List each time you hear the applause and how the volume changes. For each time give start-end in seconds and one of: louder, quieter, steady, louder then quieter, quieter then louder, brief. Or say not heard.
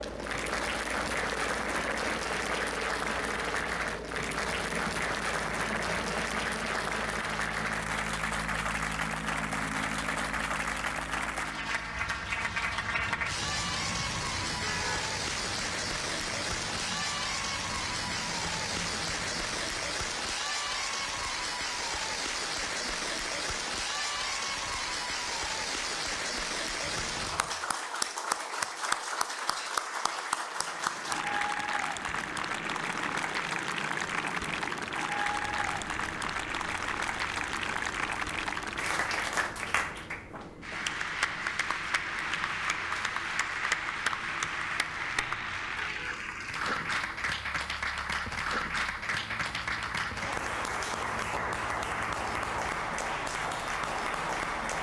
0.0-54.7 steady.